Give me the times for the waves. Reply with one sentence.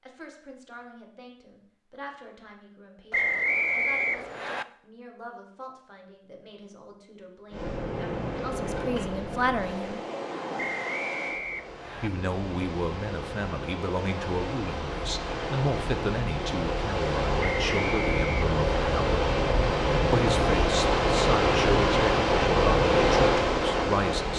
You can hear the waves from 7.5 to 24.3 s.